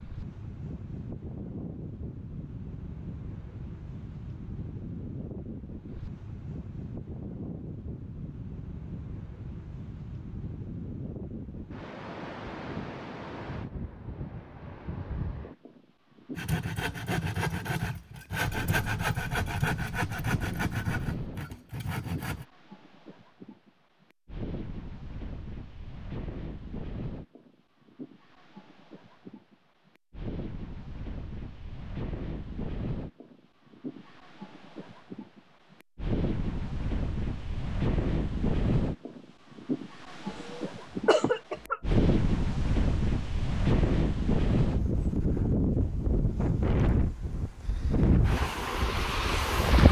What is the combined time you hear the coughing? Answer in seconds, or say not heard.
2 s.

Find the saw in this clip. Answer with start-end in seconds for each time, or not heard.
16.4-22.4.